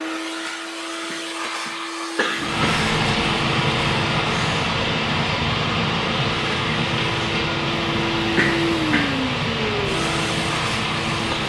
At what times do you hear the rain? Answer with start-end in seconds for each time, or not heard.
2.4-11.4.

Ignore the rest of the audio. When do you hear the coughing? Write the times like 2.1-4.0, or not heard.
1.1-2.6, 8.3-9.1.